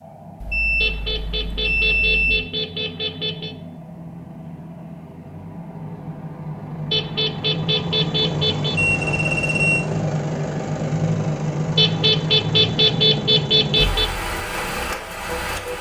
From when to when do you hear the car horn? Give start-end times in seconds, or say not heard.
0.8-3.5, 6.9-8.8, 11.8-14.1.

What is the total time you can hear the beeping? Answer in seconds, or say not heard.
3 s.